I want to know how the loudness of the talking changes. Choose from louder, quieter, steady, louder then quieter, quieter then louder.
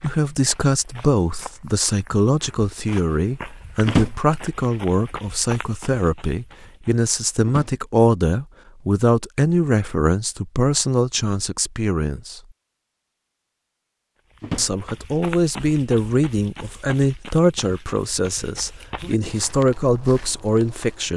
steady.